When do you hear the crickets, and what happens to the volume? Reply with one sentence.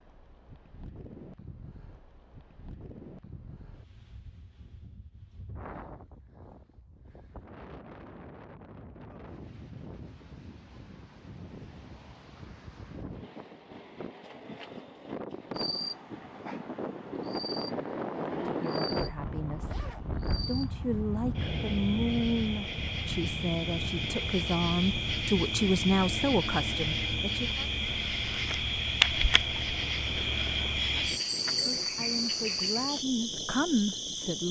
The crickets can be heard from 15.6 to 34.4 s, getting louder.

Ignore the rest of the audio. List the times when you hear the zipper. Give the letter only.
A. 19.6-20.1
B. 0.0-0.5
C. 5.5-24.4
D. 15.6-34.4
A.